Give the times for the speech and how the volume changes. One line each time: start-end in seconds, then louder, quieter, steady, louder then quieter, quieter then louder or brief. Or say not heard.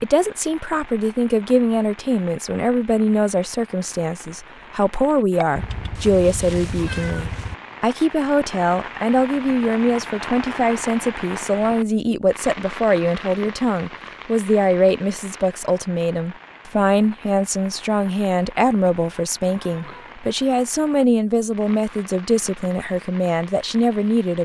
0.0-24.4 steady.